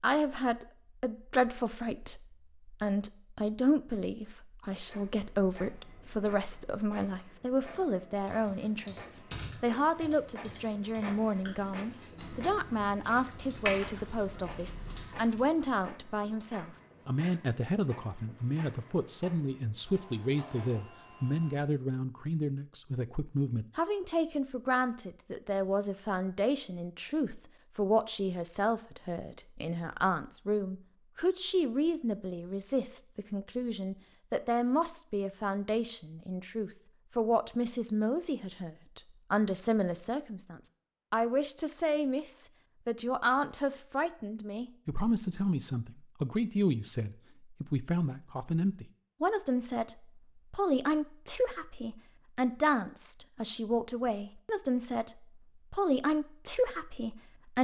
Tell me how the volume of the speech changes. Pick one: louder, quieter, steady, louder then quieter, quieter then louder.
steady.